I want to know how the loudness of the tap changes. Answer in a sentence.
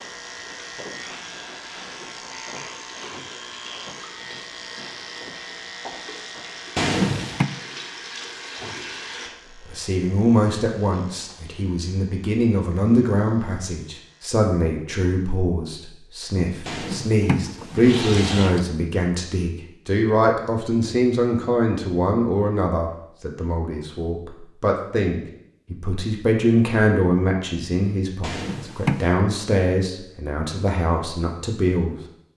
The volume of the tap goes up.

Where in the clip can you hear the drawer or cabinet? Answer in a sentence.
The drawer or cabinet can be heard from 6.8 to 7.5 s, from 16.6 to 18.6 s and from 28.2 to 29.1 s.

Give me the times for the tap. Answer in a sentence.
You can hear the tap from 0.0 to 9.3 s.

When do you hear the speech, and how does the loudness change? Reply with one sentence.
You can hear the speech from 9.6 to 31.9 s, at a steady volume.